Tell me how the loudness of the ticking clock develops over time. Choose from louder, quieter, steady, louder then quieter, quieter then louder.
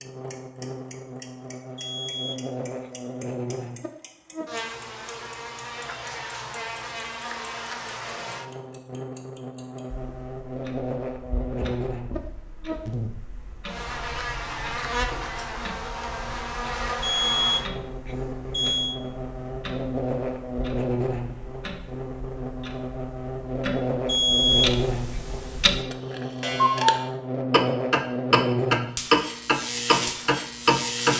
louder.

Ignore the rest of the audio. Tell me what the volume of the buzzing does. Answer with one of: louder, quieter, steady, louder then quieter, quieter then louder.
louder.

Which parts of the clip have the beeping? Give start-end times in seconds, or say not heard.
1.8-2.9, 17.0-19.0, 24.1-24.7.